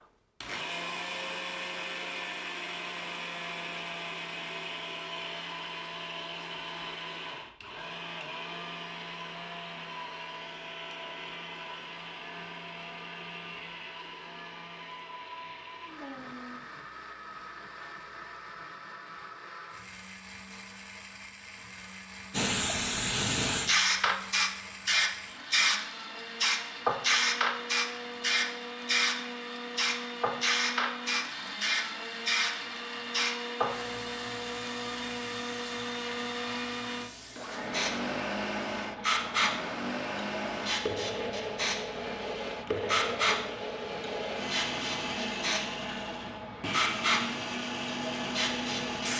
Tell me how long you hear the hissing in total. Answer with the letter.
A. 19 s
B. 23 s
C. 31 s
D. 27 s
D.